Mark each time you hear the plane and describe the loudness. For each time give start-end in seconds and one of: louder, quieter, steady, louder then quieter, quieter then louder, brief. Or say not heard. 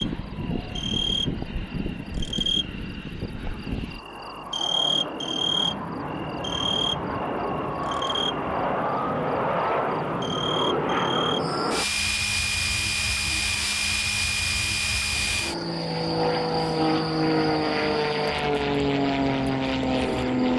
0.0-20.5 louder.